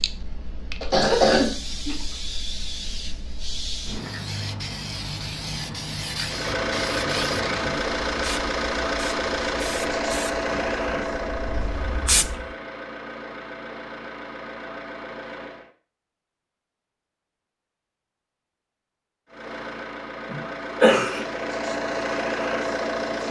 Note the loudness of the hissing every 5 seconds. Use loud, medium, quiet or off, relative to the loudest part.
loud, loud, loud, off, off.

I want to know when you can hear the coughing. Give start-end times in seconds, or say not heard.
0.8-2.0, 20.3-21.2.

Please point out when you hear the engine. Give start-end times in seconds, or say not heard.
6.2-15.7, 19.2-23.2.